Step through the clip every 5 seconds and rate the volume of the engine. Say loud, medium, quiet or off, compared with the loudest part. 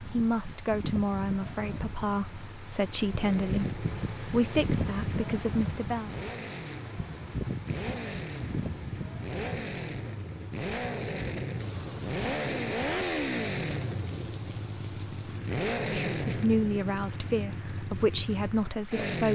medium, medium, loud, loud.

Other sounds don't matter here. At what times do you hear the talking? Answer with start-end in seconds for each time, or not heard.
0.0-6.2, 15.8-19.3.